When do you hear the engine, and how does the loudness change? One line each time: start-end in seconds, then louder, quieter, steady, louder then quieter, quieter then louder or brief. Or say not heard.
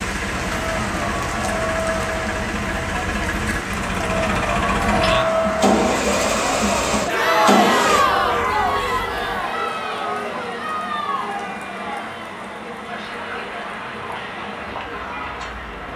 0.0-8.1 louder.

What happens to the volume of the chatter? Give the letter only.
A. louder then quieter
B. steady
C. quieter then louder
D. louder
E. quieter
A.